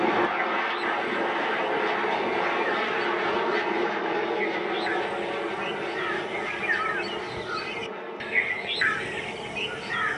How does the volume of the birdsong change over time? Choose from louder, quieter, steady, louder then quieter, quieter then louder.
louder.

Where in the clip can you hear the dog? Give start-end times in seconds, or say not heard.
not heard.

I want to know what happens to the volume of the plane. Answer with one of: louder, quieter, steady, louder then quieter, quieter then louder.
quieter.